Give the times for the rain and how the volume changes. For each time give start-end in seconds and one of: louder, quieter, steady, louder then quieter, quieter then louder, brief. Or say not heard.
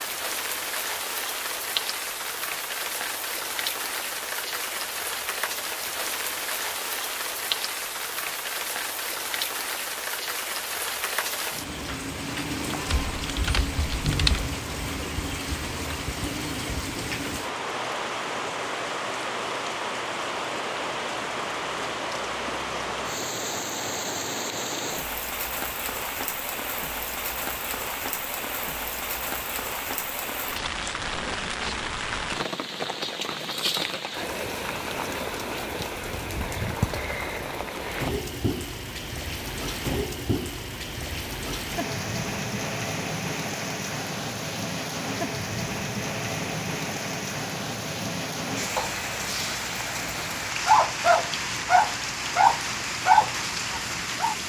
0.0-54.4 steady.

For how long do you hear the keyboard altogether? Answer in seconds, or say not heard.
2 s.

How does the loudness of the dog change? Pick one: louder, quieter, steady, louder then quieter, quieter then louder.
louder.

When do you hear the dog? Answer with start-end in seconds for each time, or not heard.
48.8-54.4.